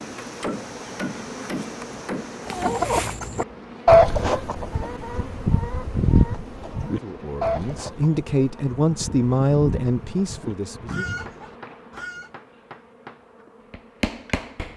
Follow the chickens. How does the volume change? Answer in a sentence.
The loudness of the chickens goes down.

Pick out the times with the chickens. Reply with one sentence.
You can hear the chickens from 2.5 to 12.3 s.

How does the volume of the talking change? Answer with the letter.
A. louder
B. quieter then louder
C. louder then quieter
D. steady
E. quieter
C.